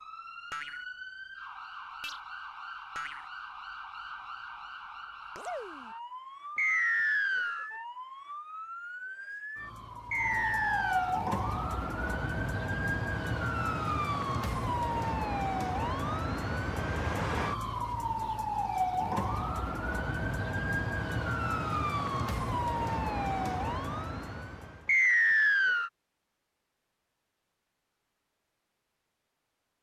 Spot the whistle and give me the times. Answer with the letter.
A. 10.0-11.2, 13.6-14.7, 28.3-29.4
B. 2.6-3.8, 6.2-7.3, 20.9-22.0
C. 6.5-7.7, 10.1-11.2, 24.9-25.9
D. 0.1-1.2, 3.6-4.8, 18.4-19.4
C.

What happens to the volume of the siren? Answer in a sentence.
The volume of the siren goes up.